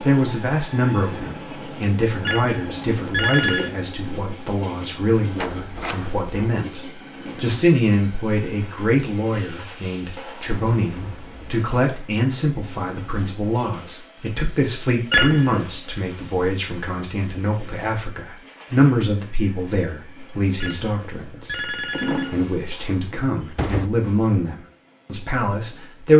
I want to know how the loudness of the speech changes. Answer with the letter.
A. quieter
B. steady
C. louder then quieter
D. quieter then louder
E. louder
B.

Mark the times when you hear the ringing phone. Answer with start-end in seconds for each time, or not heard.
2.2-3.7, 15.1-15.8, 20.6-22.6.